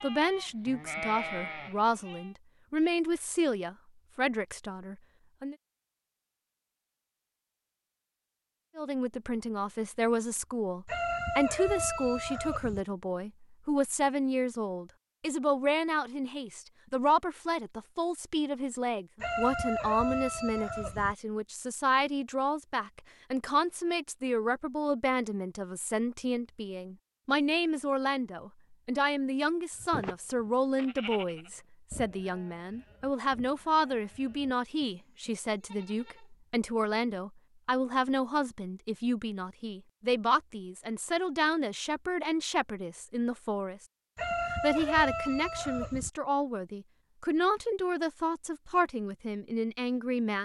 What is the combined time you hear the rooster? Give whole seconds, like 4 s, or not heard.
6 s.